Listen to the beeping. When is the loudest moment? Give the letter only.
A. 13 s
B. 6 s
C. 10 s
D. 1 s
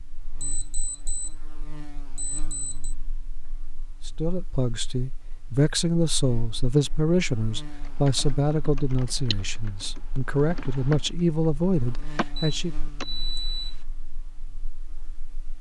A.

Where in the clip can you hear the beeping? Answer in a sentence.
The beeping can be heard from 0.4 to 1.4 s, from 2.1 to 3.0 s and from 12.3 to 13.8 s.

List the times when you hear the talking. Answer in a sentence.
You can hear the talking from 4.0 to 12.8 s.